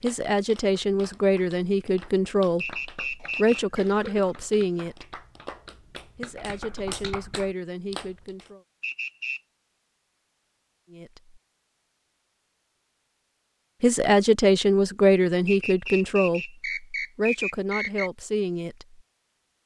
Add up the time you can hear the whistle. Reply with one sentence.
The whistle can be heard for 4 seconds in total.